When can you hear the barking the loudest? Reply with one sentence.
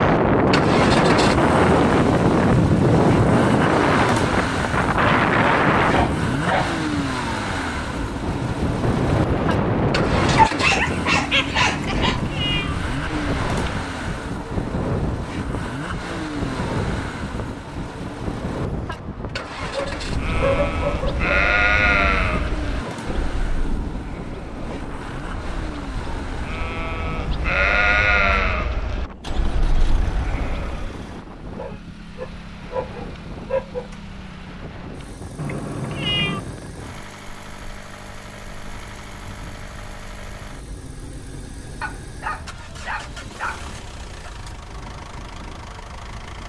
The loudest moment of the barking is at 11 seconds.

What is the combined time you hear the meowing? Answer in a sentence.
The meowing can be heard for 2 seconds in total.